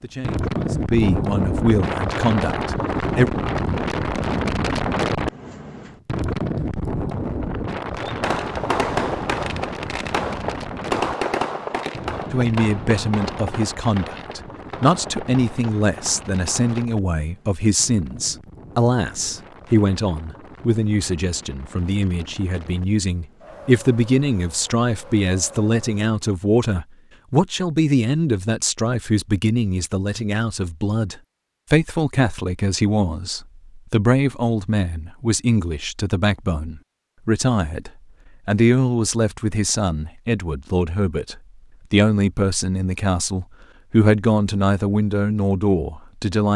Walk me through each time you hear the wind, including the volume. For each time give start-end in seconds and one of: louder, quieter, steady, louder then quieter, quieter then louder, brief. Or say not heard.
0.2-26.2 quieter.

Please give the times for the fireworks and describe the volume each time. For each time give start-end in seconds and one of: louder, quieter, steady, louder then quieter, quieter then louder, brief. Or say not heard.
8.0-16.9 quieter.